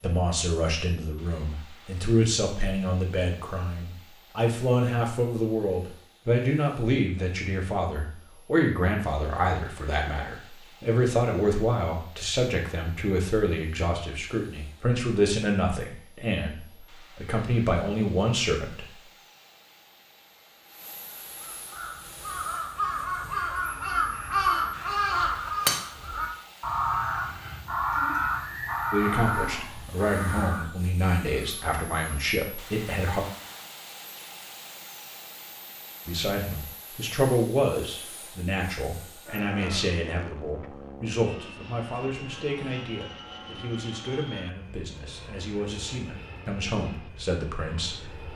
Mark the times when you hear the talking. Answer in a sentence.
You can hear the talking from 0.0 to 19.0 s, from 28.9 to 33.2 s and from 36.0 to 48.3 s.